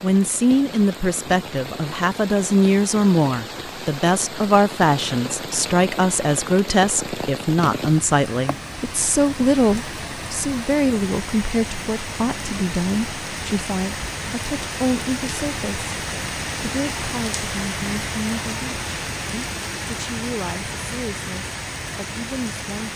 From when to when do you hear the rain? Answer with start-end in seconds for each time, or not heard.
0.0-22.9.